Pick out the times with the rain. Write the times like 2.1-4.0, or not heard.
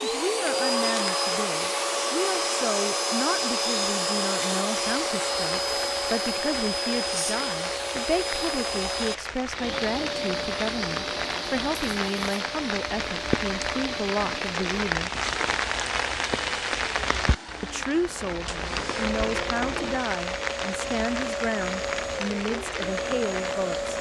4.8-23.9.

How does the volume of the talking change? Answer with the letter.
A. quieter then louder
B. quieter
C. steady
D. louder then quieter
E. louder
C.